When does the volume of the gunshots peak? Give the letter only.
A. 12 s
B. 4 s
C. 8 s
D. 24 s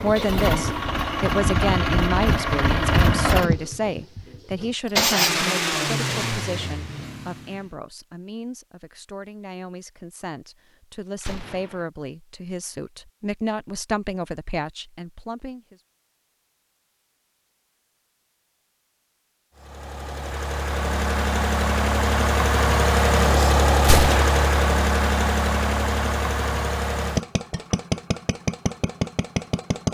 D.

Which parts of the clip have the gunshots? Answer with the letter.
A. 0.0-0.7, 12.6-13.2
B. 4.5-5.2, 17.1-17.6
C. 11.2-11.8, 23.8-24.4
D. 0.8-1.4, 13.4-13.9
C.